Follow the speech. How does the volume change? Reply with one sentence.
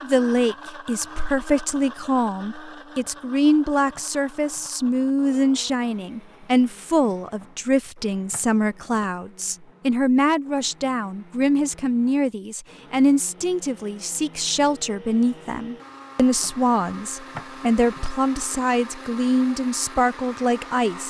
The volume of the speech stays about the same.